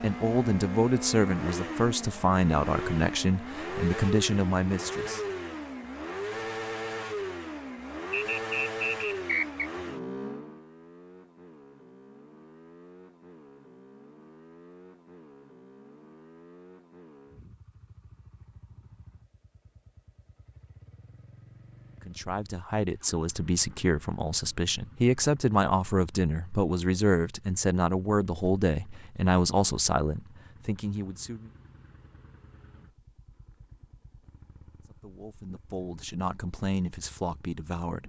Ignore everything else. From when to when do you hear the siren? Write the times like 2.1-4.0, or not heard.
not heard.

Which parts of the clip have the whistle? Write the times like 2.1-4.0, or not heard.
8.1-9.7.